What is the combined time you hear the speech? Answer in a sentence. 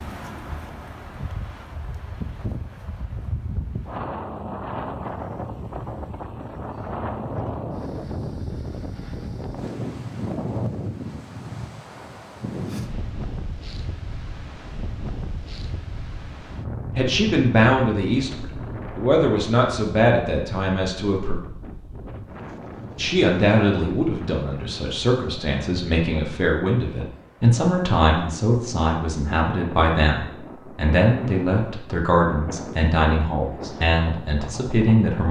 The speech can be heard for 17 seconds in total.